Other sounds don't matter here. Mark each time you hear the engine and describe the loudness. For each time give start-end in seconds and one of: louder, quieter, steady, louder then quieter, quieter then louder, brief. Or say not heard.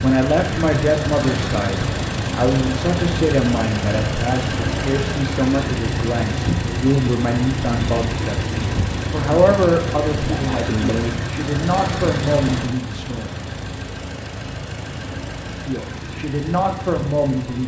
0.0-17.6 quieter.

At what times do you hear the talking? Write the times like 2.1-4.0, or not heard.
0.0-13.4, 15.5-17.6.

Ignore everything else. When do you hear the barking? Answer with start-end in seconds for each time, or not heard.
not heard.